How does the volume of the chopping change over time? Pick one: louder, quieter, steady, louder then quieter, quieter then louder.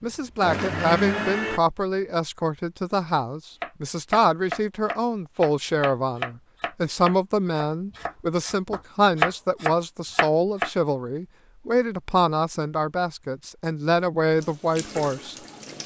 quieter then louder.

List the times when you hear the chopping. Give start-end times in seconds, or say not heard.
3.6-10.7.